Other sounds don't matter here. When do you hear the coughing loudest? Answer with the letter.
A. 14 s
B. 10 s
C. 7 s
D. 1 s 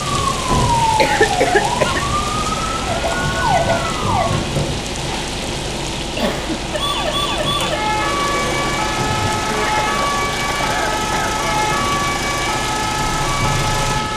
D.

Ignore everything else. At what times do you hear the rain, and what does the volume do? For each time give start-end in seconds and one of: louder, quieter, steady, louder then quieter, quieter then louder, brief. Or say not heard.
0.0-14.1 steady.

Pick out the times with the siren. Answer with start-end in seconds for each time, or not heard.
0.0-4.4, 6.7-14.1.